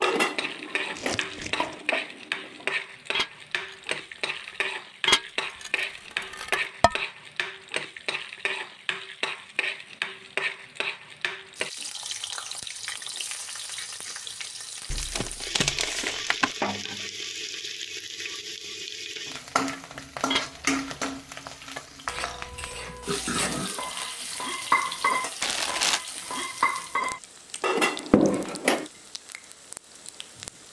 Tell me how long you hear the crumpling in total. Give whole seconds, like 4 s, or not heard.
3 s.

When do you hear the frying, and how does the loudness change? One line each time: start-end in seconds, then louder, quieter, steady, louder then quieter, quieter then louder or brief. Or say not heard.
0.0-30.6 steady.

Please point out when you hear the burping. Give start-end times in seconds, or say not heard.
22.2-24.2.